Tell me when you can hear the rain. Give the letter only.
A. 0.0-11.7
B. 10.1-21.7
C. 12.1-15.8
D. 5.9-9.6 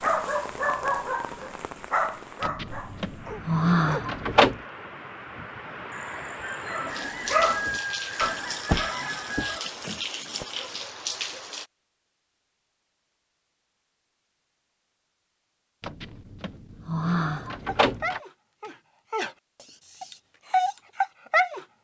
A.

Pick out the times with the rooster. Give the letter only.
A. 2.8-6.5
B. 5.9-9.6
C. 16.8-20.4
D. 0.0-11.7
B.